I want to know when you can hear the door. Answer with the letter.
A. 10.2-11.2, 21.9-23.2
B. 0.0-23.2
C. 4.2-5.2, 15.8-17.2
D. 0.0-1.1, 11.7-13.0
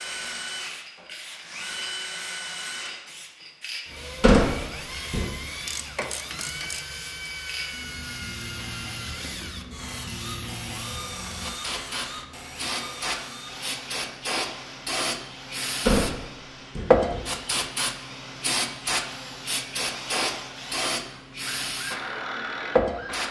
C.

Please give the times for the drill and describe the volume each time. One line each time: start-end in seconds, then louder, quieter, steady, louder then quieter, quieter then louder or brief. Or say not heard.
0.0-23.2 quieter then louder.